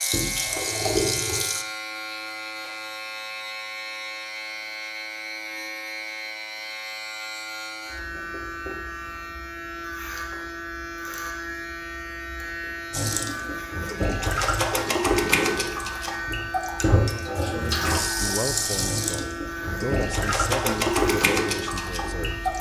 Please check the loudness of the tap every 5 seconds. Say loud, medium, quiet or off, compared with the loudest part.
loud, off, loud, loud, loud.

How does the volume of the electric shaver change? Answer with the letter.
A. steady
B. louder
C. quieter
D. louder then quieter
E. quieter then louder
A.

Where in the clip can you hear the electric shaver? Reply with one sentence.
You can hear the electric shaver from 0.0 to 22.5 s.